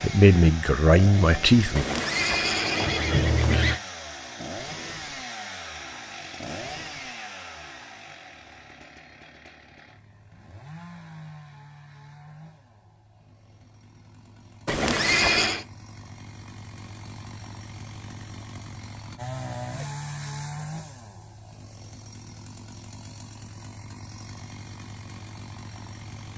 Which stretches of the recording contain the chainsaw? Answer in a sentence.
You can hear the chainsaw from 0.0 to 26.3 s.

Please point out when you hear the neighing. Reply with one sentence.
You can hear the neighing from 1.8 to 3.8 s and from 14.7 to 15.7 s.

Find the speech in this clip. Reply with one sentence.
The speech can be heard from 0.0 to 1.9 s.